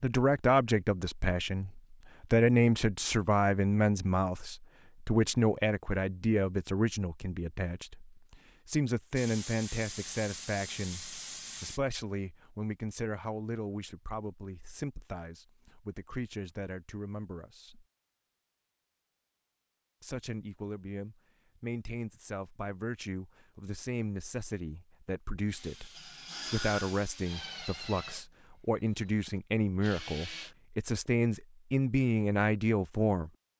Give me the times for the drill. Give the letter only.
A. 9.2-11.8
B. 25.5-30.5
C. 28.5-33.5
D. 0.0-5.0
B.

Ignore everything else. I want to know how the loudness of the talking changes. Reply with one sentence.
The loudness of the talking goes down, then up.